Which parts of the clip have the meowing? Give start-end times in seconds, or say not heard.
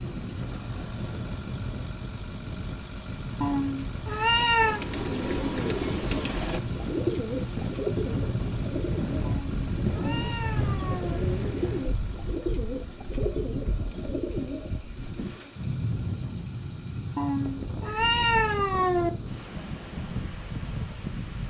3.4-4.8, 9.2-11.2, 17.1-19.1.